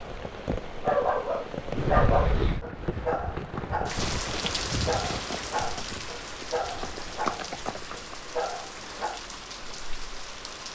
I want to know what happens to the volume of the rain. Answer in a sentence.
The loudness of the rain goes down.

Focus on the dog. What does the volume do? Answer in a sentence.
The volume of the dog goes down.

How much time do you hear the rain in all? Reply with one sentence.
The rain can be heard for 11 seconds in total.